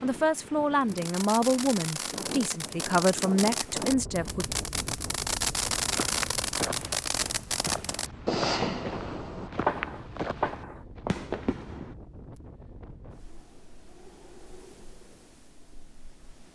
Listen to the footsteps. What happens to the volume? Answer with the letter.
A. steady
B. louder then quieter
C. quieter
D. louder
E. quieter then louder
A.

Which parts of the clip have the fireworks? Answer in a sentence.
You can hear the fireworks from 0.8 to 11.9 s.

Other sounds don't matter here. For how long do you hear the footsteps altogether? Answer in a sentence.
The footsteps can be heard for 6 seconds in total.